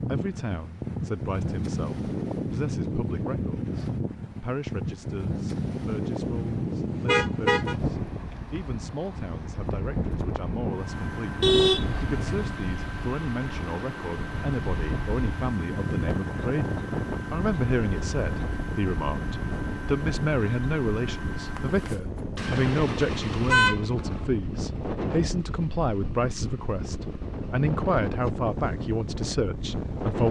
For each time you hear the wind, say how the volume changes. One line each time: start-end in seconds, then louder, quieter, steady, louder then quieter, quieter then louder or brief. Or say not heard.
0.0-30.2 steady.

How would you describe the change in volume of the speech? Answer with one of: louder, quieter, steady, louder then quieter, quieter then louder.
louder.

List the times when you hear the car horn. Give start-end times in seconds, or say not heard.
6.4-7.8, 11.4-12.4, 23.4-24.3.